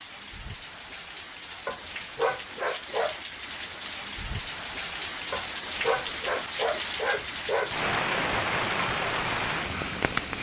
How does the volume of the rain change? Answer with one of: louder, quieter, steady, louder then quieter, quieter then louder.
louder.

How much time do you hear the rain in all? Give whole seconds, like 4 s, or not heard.
10 s.